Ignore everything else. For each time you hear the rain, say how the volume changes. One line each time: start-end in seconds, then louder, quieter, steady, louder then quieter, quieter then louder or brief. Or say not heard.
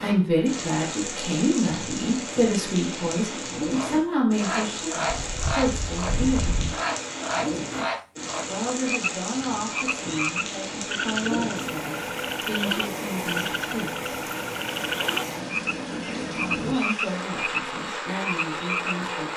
0.0-19.3 steady.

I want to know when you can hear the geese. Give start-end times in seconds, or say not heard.
5.1-6.8.